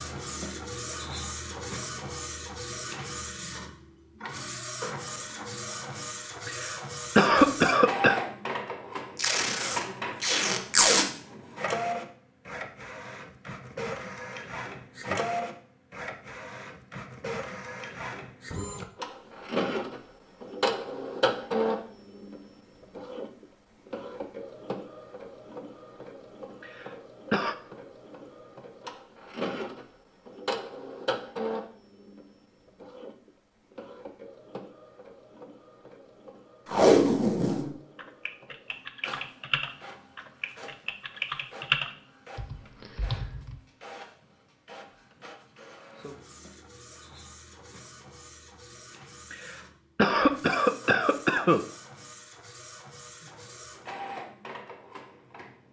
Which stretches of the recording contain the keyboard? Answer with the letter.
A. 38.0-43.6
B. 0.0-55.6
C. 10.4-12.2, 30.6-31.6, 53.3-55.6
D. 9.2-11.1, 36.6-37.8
A.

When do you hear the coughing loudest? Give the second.
7 s.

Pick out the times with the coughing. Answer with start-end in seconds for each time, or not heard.
6.5-8.2, 26.6-27.6, 49.3-51.6.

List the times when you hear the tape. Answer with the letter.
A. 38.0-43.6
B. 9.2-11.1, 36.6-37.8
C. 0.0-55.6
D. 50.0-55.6
B.